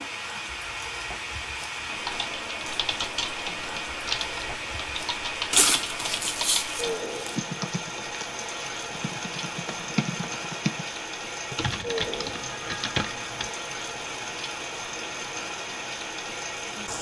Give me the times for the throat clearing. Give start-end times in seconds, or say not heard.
not heard.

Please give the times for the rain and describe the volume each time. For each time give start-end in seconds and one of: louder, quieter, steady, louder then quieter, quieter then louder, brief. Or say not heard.
0.0-16.9 steady.